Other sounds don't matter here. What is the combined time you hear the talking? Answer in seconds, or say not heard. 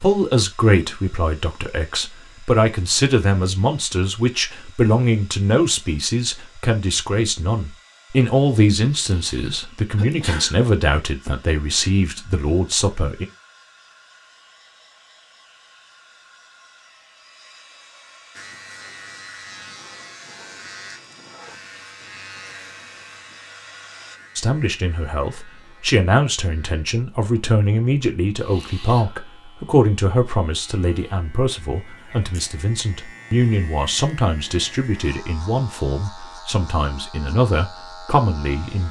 28 s.